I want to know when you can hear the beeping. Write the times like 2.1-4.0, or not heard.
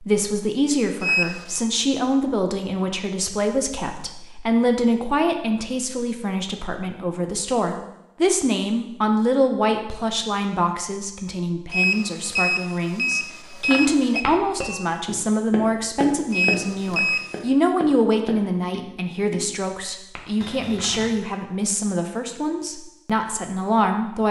1.0-1.6, 11.7-14.2, 16.3-17.4.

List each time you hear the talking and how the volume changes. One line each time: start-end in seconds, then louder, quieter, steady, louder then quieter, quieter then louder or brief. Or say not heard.
0.0-24.2 steady.